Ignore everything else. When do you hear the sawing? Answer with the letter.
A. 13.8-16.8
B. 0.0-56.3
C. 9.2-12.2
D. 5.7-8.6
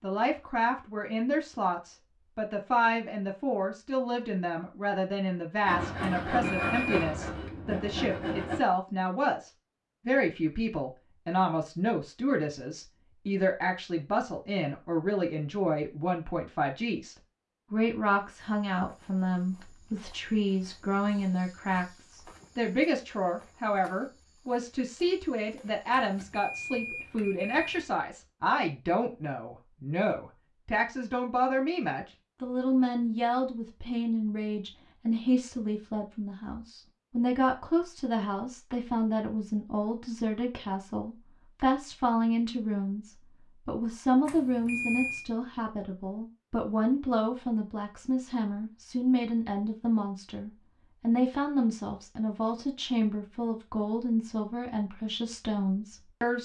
D.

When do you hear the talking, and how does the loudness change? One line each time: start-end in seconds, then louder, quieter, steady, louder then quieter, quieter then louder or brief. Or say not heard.
0.0-56.3 steady.